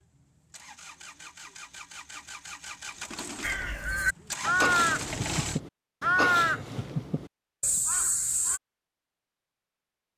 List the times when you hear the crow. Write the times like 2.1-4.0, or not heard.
3.4-8.6.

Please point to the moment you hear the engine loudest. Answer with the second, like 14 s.
5 s.